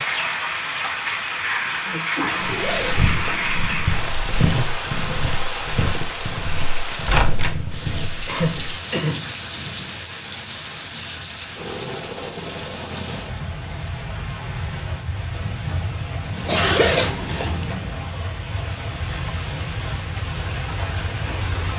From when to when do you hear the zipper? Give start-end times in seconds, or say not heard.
2.2-4.1, 16.4-17.9.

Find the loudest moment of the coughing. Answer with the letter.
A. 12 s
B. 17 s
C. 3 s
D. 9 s
B.